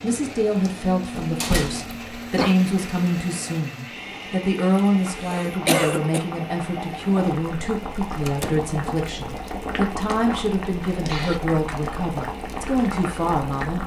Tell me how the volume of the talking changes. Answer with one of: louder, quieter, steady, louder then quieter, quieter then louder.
steady.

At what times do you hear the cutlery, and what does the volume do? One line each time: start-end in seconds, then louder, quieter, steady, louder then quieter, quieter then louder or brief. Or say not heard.
not heard.